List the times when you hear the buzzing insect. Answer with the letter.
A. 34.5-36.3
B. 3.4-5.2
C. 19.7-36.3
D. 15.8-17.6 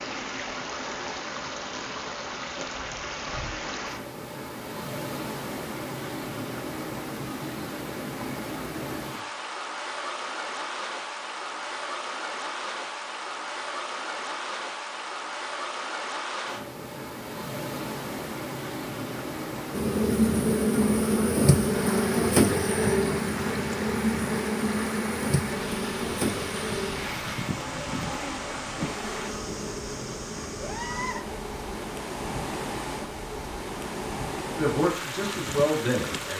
C.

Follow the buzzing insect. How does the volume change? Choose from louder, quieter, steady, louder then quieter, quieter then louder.
quieter.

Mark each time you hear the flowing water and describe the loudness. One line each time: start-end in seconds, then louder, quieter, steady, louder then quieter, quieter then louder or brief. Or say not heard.
0.0-36.3 steady.